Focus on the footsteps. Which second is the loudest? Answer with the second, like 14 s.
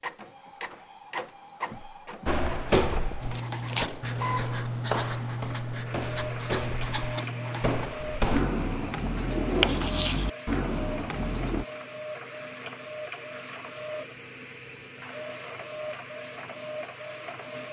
3 s.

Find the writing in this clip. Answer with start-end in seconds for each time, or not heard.
3.2-11.7.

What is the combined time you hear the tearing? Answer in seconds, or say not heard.
2 s.